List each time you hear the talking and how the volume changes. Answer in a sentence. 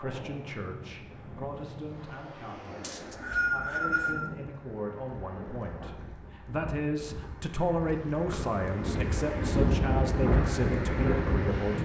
You can hear the talking from 0.0 to 11.8 s, getting louder.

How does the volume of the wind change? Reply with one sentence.
The volume of the wind goes up.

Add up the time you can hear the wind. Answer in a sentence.
You can hear the wind for 12 seconds altogether.